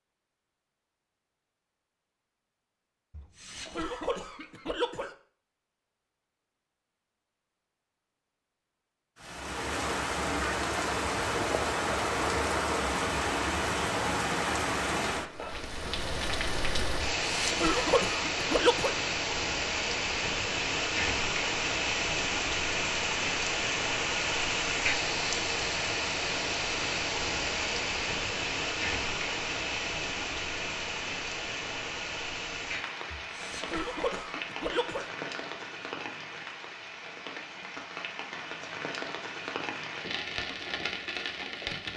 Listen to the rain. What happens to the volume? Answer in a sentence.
The volume of the rain goes down.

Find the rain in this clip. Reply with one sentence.
You can hear the rain from 9.2 to 41.9 s.